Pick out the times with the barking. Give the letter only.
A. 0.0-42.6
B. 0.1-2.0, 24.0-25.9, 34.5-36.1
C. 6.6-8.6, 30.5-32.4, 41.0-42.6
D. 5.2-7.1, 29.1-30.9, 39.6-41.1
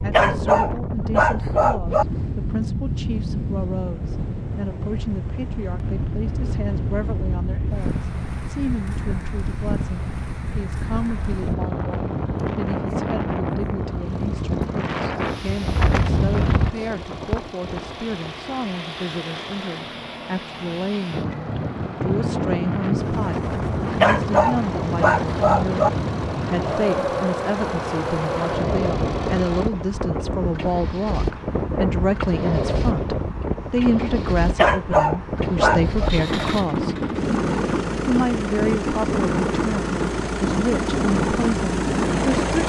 B.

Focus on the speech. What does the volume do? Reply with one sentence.
The loudness of the speech goes up.